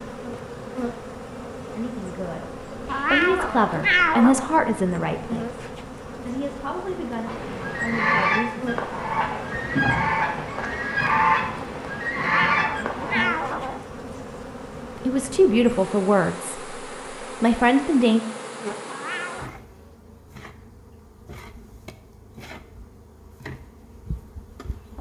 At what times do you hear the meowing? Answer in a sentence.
The meowing can be heard from 2.9 to 4.5 s, from 12.2 to 13.8 s and from 18.9 to 19.6 s.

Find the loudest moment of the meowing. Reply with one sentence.
The loudest moment of the meowing is at 4 seconds.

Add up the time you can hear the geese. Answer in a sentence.
The geese can be heard for 6 seconds in total.